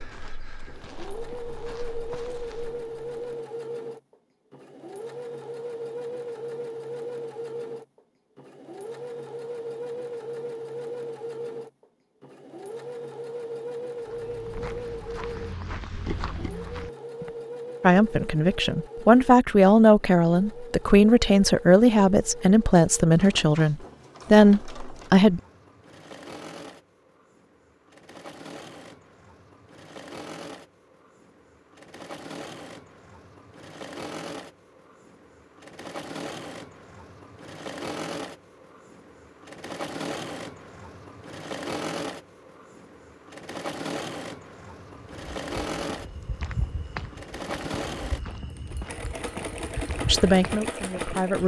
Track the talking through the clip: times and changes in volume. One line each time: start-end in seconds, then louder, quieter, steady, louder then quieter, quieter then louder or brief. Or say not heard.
17.8-25.4 steady
50.0-51.4 brief.